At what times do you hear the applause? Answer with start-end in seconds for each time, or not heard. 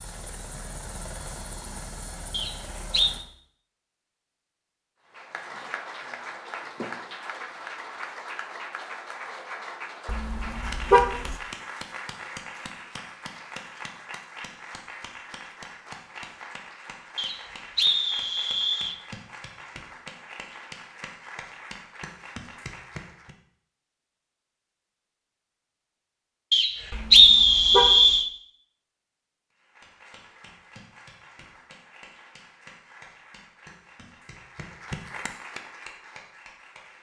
5.1-23.4, 29.5-36.9.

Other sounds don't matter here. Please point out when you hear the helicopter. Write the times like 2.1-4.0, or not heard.
0.0-3.2.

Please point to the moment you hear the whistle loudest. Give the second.
27 s.